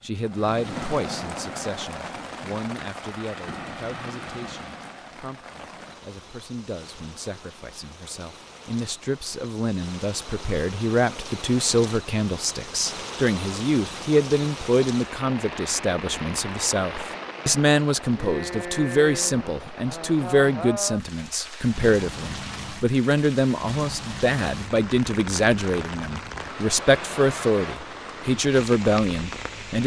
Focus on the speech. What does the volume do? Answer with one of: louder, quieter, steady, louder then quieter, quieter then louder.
louder.